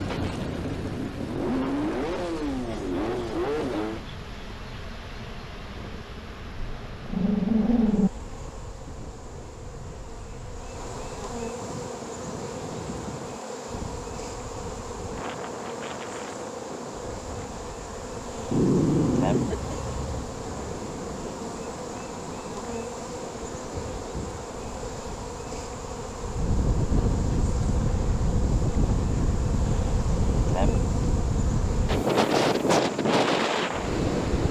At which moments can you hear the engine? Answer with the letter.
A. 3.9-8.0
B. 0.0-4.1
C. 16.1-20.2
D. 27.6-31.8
B.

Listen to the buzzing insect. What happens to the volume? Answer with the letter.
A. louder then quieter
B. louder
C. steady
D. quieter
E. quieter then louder
B.